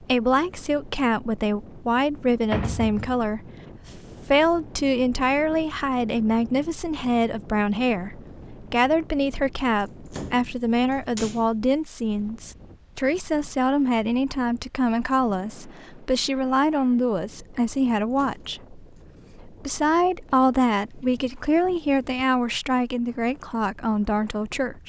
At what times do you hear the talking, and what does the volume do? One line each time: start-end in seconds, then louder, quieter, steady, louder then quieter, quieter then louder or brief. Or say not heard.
0.0-24.8 steady.